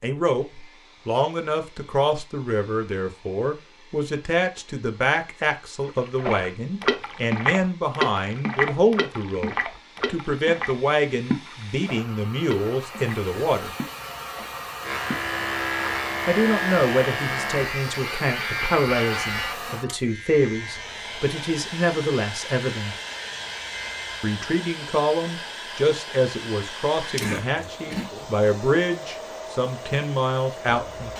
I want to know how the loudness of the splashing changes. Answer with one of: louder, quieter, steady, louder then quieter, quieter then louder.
quieter.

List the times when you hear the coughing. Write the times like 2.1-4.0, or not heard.
27.2-28.1.